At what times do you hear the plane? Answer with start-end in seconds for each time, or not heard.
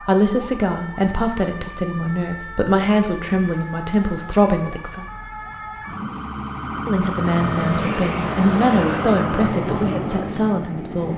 7.0-11.1.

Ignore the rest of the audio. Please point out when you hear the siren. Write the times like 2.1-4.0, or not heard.
0.0-9.5.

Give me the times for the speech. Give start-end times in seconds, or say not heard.
0.0-5.0, 6.8-11.1.